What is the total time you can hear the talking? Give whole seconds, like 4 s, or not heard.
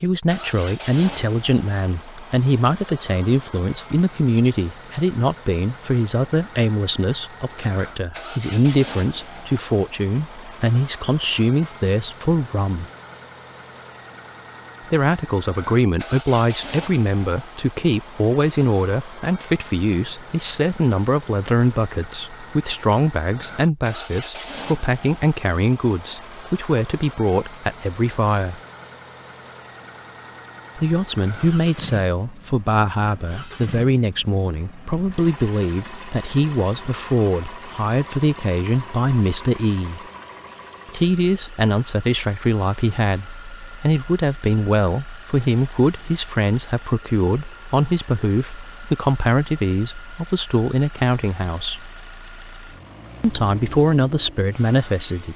49 s.